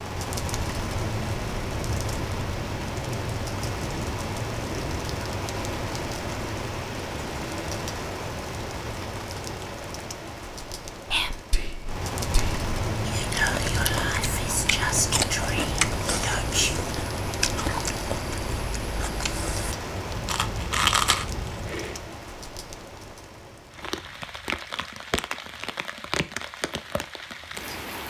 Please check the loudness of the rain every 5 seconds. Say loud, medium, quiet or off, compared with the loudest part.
loud, loud, loud, loud, medium, loud.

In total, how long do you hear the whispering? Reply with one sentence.
The whispering can be heard for 6 seconds in total.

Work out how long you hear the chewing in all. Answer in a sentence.
The chewing can be heard for 9 seconds in total.